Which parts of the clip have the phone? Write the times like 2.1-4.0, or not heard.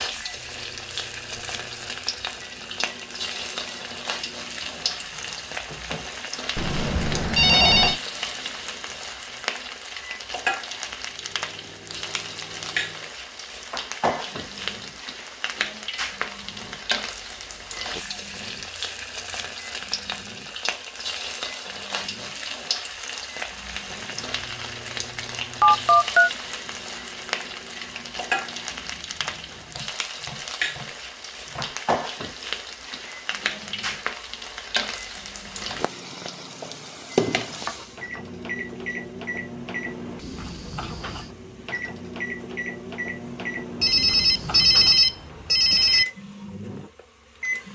6.5-8.0, 25.6-26.3, 43.8-46.0.